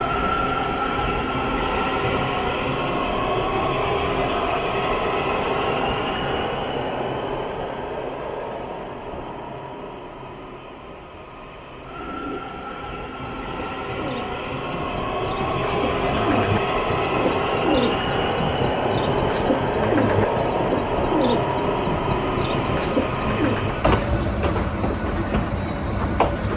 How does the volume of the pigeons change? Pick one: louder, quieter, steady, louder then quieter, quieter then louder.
louder.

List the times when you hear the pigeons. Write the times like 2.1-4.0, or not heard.
11.8-23.9.